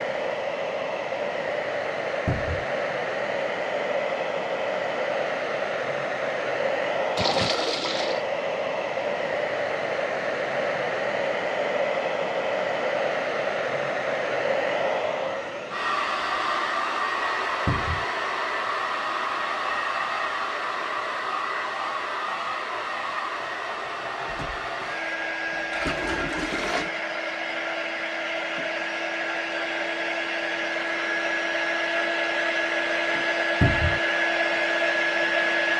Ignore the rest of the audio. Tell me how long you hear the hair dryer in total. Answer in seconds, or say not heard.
36 s.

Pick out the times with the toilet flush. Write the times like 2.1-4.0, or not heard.
7.2-8.2, 24.2-26.9.